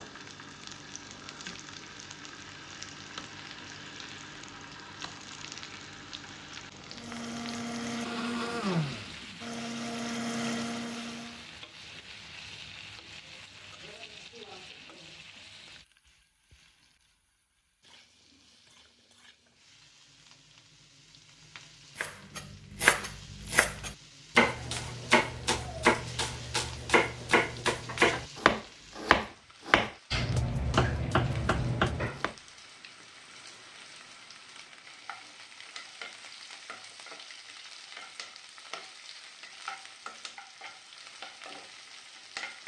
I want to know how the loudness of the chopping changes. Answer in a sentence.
The volume of the chopping stays about the same.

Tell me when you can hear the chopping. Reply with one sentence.
The chopping can be heard from 21.9 to 32.4 s.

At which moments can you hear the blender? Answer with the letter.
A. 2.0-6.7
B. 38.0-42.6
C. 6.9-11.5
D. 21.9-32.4
C.